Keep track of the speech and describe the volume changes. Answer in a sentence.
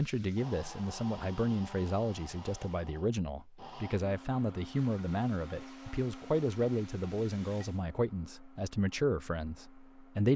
The volume of the speech stays about the same.